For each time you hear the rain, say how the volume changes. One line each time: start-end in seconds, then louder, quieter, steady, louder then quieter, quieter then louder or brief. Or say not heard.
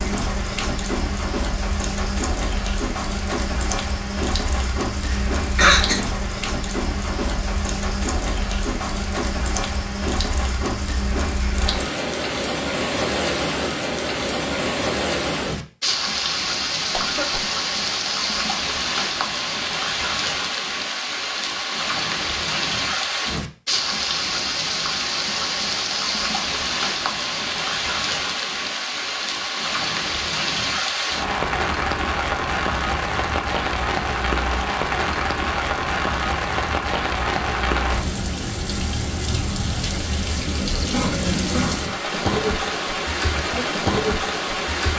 0.0-44.9 steady.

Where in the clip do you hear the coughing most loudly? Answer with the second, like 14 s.
6 s.